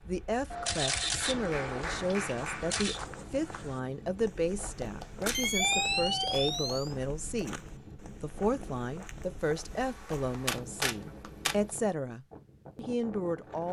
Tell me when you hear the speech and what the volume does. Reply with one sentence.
The speech can be heard from 0.1 to 13.6 s, at a steady volume.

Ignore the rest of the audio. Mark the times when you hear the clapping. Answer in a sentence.
The clapping can be heard from 1.0 to 2.9 s, from 4.8 to 6.8 s and from 10.1 to 11.8 s.